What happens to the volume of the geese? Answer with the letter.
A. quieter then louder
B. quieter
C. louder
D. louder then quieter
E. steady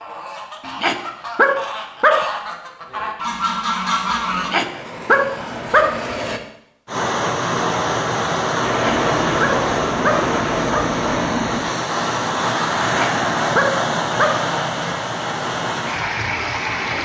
C.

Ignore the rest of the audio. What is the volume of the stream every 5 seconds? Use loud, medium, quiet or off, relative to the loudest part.
off, loud, loud, loud.